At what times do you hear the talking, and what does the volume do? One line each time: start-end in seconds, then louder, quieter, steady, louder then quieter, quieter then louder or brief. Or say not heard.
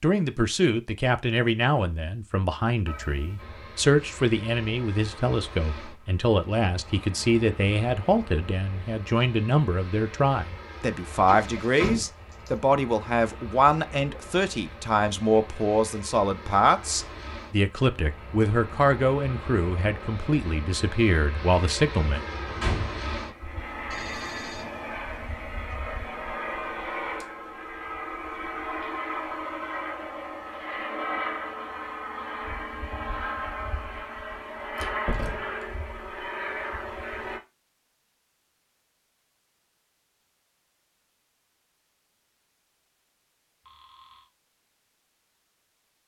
0.0-22.2 steady.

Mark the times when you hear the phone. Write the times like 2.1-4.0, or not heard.
2.9-3.5, 23.9-25.1, 43.6-44.3.